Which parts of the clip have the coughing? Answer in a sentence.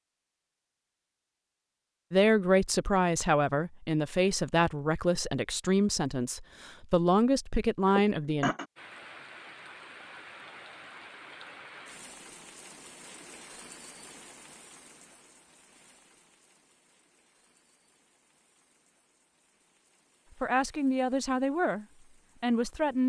The coughing can be heard from 7.8 to 8.7 s.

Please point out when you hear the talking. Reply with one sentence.
The talking can be heard from 2.1 to 8.5 s and from 20.4 to 23.0 s.